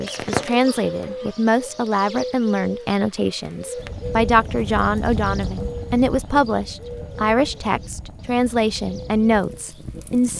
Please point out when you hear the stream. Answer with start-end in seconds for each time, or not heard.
not heard.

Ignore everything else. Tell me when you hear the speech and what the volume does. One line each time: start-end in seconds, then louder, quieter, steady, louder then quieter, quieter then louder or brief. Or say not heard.
0.0-10.3 steady.